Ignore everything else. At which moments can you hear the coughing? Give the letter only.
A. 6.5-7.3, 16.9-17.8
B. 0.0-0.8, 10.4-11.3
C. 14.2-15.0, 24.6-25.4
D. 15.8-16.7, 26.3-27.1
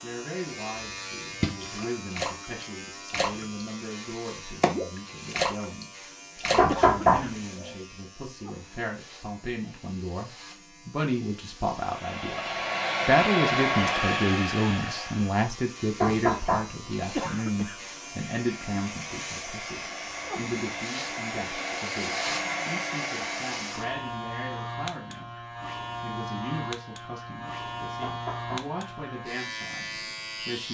A.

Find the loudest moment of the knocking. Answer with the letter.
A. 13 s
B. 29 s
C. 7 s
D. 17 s
C.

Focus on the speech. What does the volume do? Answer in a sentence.
The volume of the speech goes up, then down.